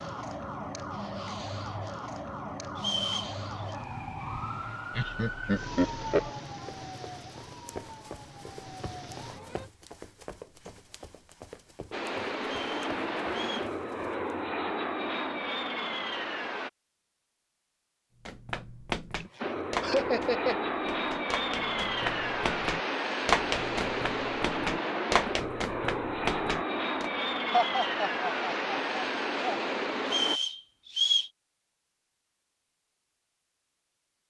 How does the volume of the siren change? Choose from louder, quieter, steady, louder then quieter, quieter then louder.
quieter.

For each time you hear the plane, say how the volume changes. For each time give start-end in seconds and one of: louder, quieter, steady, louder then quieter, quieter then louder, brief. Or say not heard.
11.9-16.7 steady
19.4-30.4 steady.